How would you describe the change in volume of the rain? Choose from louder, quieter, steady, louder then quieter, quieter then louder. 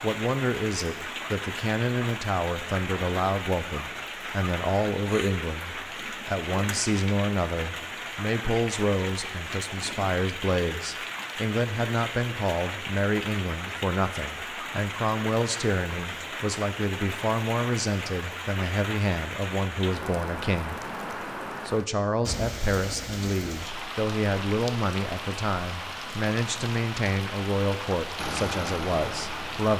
steady.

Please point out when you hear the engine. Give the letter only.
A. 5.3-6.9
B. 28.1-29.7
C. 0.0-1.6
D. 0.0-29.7
B.